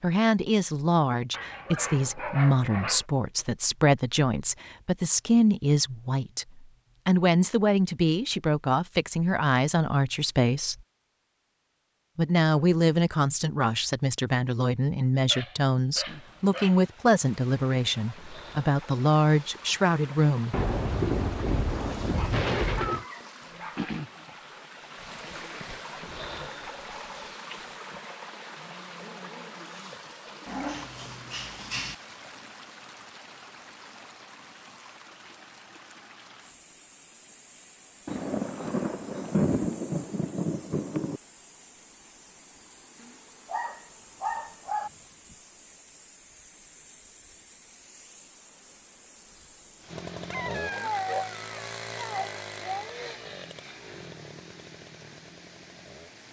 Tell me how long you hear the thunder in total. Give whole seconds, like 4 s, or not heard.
6 s.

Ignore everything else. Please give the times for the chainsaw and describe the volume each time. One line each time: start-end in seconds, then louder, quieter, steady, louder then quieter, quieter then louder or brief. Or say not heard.
49.9-56.2 quieter.